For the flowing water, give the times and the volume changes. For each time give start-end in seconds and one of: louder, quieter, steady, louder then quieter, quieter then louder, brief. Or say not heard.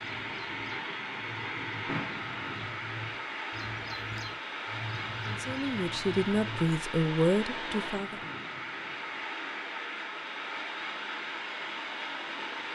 0.0-12.7 steady.